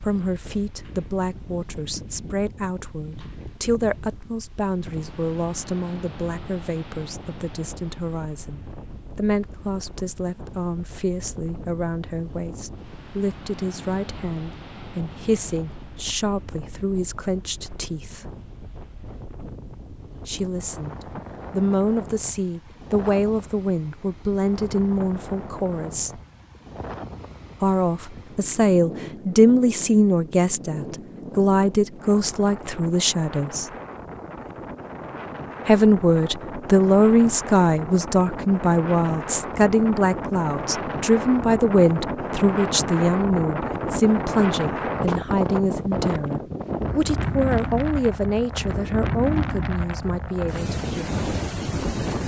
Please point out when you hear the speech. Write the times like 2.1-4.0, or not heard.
0.0-18.4, 20.2-26.2, 27.6-33.6, 35.6-51.2.